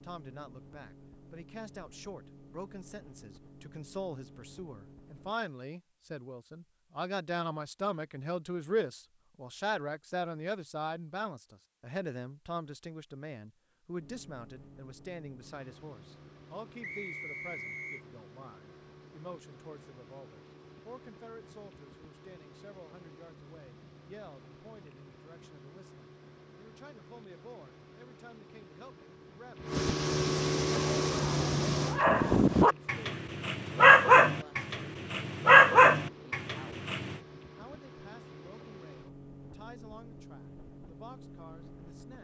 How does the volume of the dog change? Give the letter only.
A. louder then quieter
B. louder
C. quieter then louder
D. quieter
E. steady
B.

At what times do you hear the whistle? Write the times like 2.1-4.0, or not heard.
16.8-18.0.